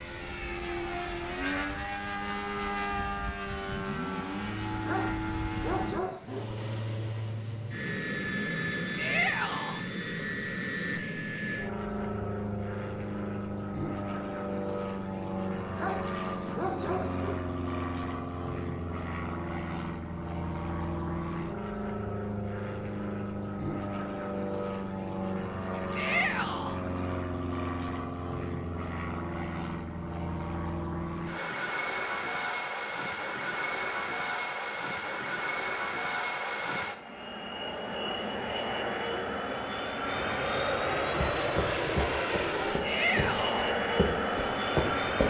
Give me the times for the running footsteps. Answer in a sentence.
The running footsteps can be heard from 41.1 to 45.2 s.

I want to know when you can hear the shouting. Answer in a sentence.
The shouting can be heard from 8.9 to 9.8 s, from 25.9 to 26.8 s and from 42.8 to 43.7 s.